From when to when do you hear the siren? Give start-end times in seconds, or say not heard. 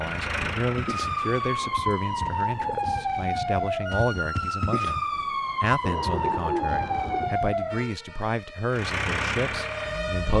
0.0-10.3.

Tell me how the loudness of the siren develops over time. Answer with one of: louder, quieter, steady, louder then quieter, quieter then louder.
quieter.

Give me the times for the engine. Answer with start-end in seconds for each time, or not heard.
0.0-1.6, 8.7-10.3.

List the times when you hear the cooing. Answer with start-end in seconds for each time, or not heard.
1.2-3.1, 5.8-7.4.